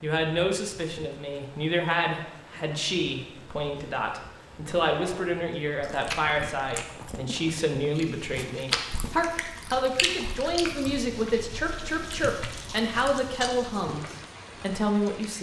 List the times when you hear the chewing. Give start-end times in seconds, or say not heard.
5.8-14.1.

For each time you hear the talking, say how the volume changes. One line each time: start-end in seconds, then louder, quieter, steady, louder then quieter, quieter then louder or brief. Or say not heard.
0.0-15.3 steady.